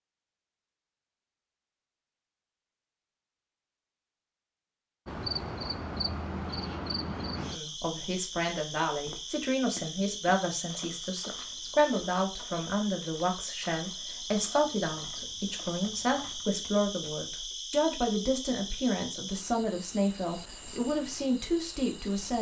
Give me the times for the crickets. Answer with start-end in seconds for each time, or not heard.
5.0-22.3.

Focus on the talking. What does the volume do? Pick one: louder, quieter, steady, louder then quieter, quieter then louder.
steady.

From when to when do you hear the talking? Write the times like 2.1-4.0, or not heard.
7.5-22.3.